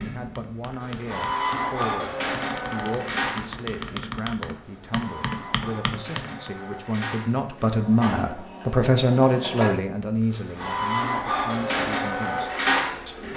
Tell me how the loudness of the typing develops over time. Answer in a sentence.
The loudness of the typing goes up.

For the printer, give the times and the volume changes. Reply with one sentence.
The printer can be heard from 0.0 to 13.3 s, getting quieter then louder.